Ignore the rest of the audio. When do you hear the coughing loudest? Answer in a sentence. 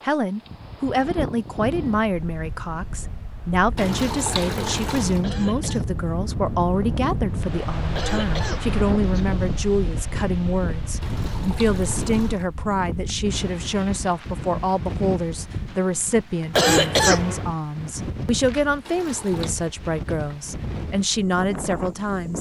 The volume of the coughing peaks at 17 seconds.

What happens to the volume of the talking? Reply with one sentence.
The loudness of the talking stays about the same.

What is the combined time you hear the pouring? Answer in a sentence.
The pouring can be heard for 4 seconds in total.